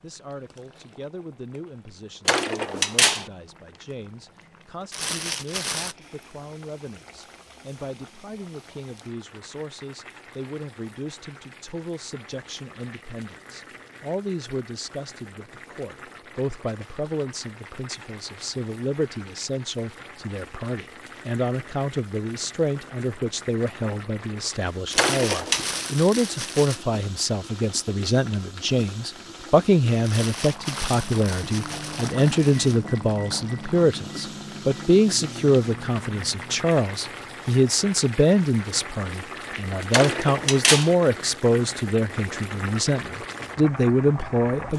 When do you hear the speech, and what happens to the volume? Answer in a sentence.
The speech can be heard from 0.0 to 44.7 s, getting louder.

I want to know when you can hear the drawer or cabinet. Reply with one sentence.
The drawer or cabinet can be heard from 2.2 to 3.2 s, from 24.9 to 25.7 s and from 39.9 to 41.0 s.